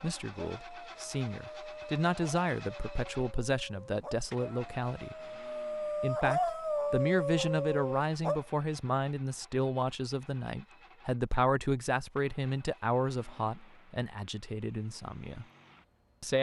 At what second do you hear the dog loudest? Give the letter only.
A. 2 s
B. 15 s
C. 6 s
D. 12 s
C.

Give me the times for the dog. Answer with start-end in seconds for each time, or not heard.
0.0-8.4.